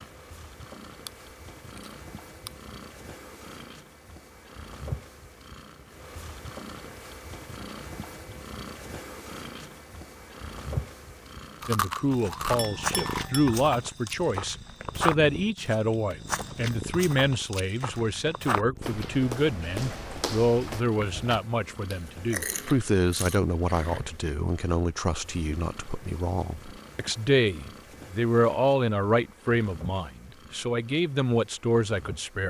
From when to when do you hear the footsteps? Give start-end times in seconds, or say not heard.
12.0-21.4.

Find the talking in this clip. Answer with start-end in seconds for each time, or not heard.
11.7-32.4.